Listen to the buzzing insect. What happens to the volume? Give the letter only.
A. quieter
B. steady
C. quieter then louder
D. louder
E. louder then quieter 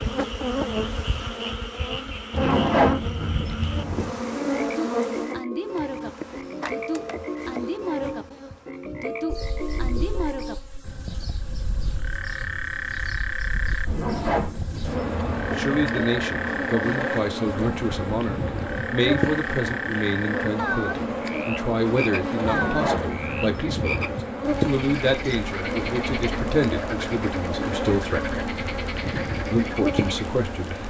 C.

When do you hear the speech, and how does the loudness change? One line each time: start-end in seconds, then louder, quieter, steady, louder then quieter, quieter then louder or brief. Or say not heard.
15.3-28.4 steady
29.5-30.8 brief.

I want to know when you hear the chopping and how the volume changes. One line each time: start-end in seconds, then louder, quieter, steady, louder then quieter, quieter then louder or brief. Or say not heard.
not heard.